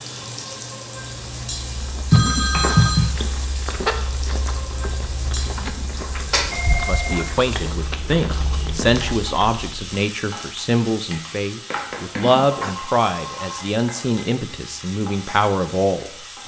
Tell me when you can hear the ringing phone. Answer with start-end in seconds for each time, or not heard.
2.1-3.1, 6.3-7.2, 11.7-13.6.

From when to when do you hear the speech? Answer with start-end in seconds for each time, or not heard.
6.8-16.4.